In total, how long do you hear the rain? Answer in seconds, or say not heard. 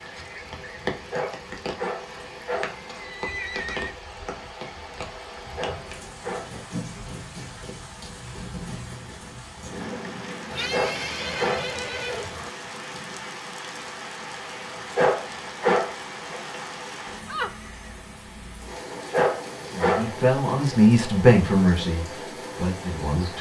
23 s.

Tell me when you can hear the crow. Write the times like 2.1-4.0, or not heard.
not heard.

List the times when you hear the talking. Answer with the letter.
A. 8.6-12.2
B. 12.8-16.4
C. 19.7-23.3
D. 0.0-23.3
C.